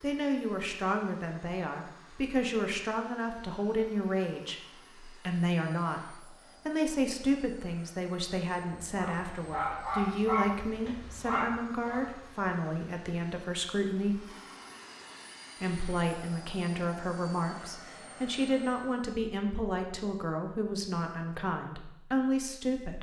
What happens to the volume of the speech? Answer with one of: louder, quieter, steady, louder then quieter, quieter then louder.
steady.